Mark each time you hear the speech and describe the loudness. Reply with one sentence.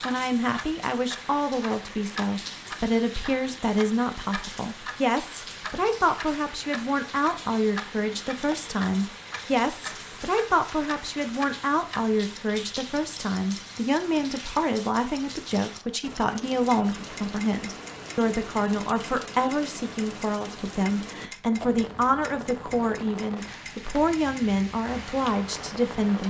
The speech can be heard from 0.0 to 26.2 s, at a steady volume.